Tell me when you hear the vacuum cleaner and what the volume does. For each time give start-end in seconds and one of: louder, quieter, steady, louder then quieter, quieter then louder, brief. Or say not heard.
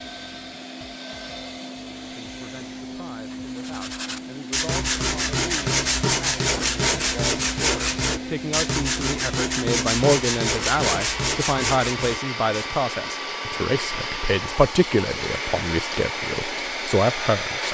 0.0-17.6 louder.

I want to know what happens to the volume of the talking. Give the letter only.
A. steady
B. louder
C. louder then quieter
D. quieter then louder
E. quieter
B.